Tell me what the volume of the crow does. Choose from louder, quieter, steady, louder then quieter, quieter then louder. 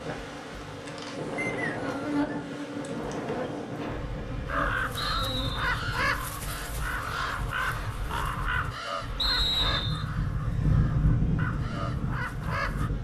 quieter.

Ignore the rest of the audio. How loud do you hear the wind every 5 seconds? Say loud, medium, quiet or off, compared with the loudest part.
medium, medium, loud.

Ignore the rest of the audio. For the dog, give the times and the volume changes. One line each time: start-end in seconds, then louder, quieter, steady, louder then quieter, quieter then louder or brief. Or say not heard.
not heard.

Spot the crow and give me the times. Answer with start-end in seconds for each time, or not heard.
4.5-12.9.